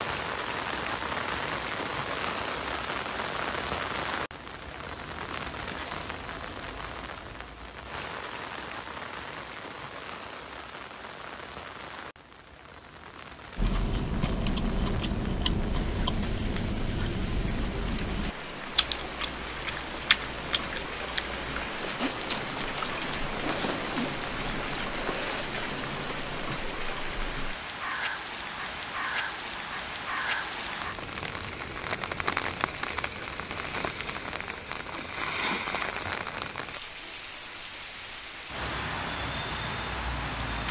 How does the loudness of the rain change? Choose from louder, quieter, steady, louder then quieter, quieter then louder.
quieter then louder.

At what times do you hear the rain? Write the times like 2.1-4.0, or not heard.
0.0-40.6.